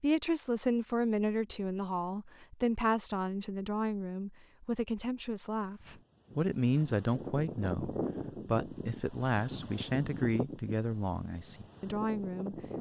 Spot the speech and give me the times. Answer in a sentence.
The speech can be heard from 0.0 to 12.6 s.